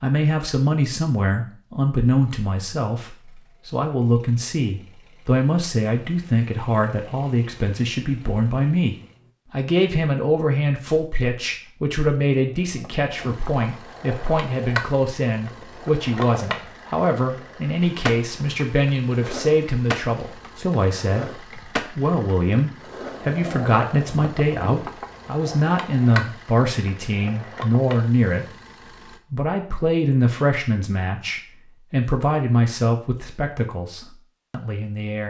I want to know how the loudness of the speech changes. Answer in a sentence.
The loudness of the speech stays about the same.